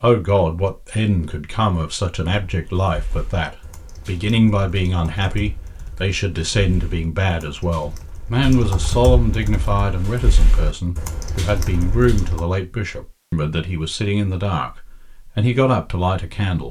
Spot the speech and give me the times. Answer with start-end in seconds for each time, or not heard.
0.0-16.6.